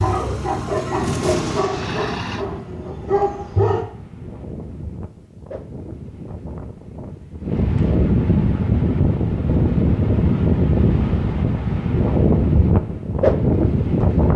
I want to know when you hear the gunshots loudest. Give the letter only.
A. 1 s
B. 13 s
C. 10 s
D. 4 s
A.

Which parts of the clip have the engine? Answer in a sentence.
The engine can be heard from 0.0 to 2.5 s.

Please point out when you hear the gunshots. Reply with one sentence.
The gunshots can be heard from 1.0 to 2.6 s.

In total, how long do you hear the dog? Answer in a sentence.
You can hear the dog for 4 seconds altogether.